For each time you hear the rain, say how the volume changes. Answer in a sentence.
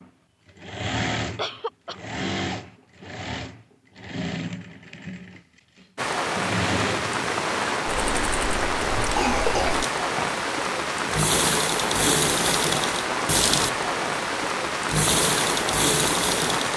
The rain can be heard from 6.0 to 16.7 s, at a steady volume.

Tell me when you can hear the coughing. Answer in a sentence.
You can hear the coughing from 1.4 to 2.0 s and from 8.9 to 10.3 s.